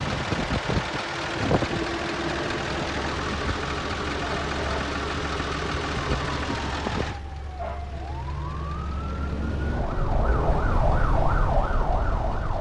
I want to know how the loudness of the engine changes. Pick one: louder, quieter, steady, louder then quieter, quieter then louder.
quieter.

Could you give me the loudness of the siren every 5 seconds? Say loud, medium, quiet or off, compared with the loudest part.
medium, medium, loud.